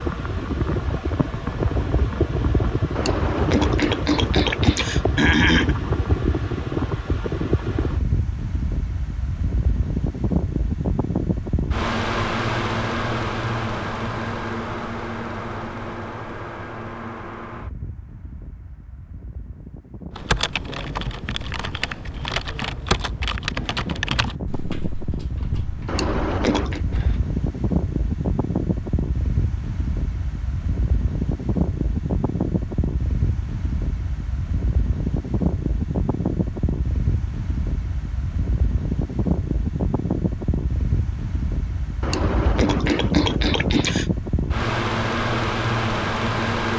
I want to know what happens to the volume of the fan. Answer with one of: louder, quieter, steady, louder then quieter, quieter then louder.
quieter then louder.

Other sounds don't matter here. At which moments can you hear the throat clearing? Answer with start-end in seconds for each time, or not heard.
3.0-5.8, 25.9-26.8, 42.0-44.0.